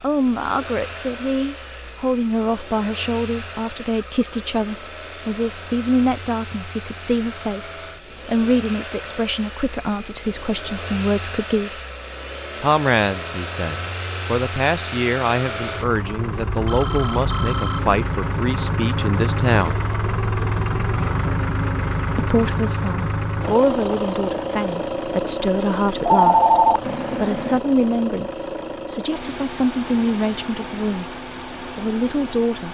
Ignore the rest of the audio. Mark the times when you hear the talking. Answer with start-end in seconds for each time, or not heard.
0.0-11.8, 12.6-19.8, 22.1-32.7.